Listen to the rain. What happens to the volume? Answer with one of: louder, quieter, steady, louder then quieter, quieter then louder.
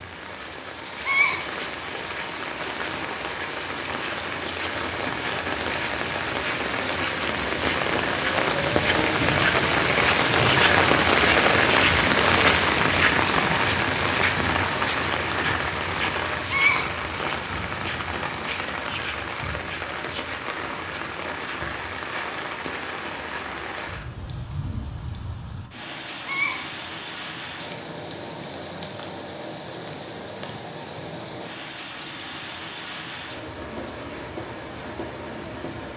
louder then quieter.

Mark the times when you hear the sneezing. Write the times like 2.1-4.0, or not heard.
0.8-1.4, 16.3-16.9, 26.1-26.6.